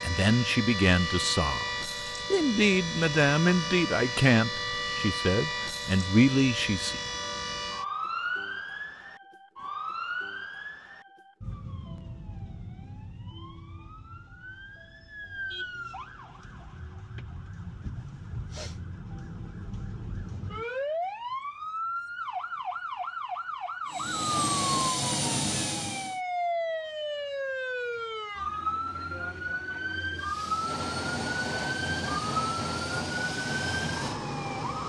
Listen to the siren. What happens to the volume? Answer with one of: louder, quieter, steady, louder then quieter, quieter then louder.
quieter then louder.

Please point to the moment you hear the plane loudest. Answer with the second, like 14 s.
25 s.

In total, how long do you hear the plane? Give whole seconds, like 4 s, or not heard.
7 s.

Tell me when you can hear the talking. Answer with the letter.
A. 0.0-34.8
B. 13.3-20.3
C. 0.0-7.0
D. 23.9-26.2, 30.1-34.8
C.